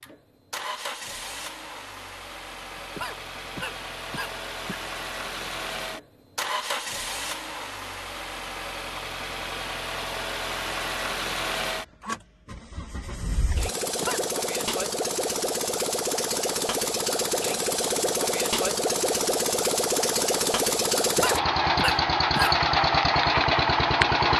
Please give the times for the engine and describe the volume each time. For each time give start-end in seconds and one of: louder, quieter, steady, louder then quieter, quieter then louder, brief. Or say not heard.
0.0-24.3 louder.